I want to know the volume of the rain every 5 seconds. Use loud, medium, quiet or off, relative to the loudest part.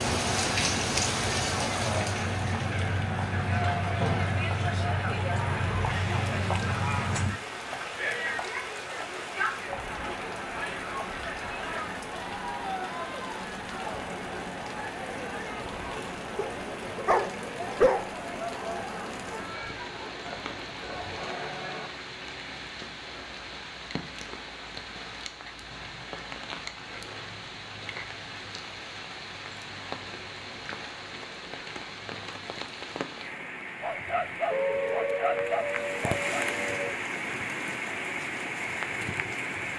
loud, medium, medium, medium, medium, medium, medium, loud.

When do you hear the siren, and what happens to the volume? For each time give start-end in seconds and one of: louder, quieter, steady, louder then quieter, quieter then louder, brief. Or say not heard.
0.1-7.4 louder
34.5-37.0 brief.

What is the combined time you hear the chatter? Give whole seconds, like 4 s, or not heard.
22 s.